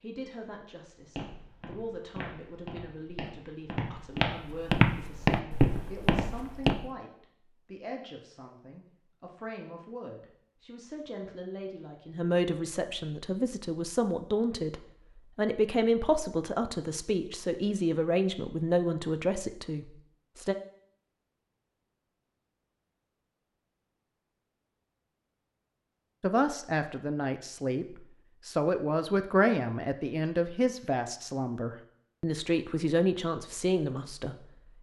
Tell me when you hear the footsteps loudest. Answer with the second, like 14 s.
5 s.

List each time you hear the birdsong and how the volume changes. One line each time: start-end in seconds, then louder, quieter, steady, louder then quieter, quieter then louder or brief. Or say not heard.
not heard.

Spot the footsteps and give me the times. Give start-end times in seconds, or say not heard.
1.1-6.8.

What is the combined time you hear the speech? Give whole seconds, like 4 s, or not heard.
29 s.